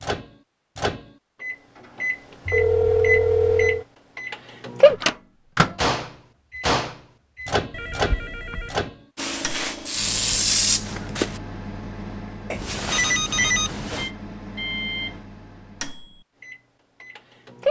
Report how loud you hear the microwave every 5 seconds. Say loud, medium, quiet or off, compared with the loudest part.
loud, loud, medium, medium.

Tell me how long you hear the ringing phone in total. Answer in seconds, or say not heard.
4 s.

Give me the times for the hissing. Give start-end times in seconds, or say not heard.
9.2-11.4.